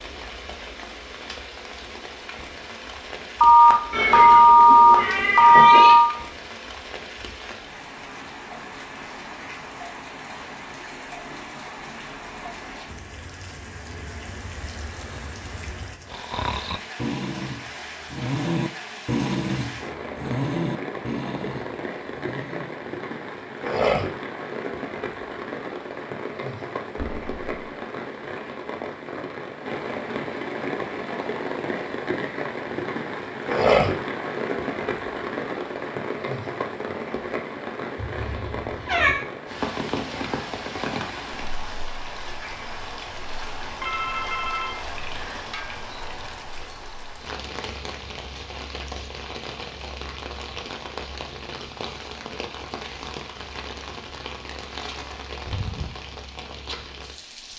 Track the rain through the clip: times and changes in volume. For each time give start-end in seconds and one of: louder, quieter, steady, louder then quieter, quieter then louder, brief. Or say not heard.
0.0-57.5 louder then quieter.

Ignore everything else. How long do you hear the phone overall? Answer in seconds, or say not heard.
5 s.